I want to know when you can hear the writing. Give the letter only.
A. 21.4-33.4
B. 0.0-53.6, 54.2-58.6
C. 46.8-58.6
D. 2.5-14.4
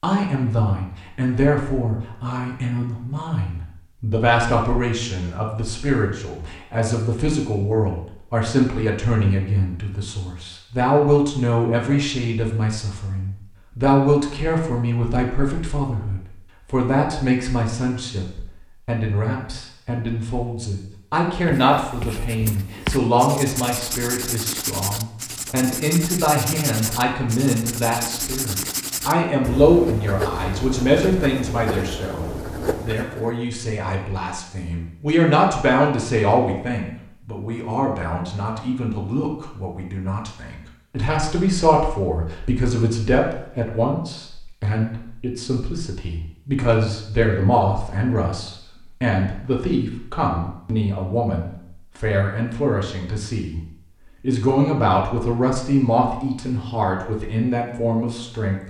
A.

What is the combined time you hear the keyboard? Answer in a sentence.
You can't hear the keyboard here.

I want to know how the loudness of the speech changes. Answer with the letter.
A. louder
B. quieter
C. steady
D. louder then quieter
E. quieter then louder
C.